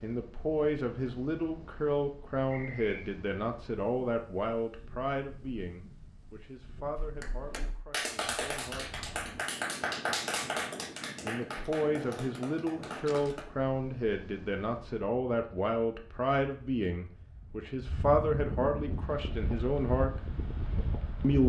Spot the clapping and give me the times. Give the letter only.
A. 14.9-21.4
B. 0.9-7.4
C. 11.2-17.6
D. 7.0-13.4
D.